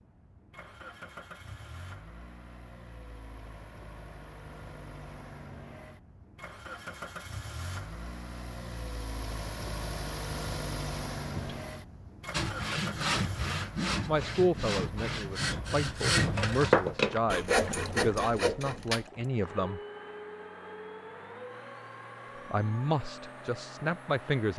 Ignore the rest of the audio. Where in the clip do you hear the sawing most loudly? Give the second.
17 s.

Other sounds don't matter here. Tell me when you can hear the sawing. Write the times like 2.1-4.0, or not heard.
12.3-19.1.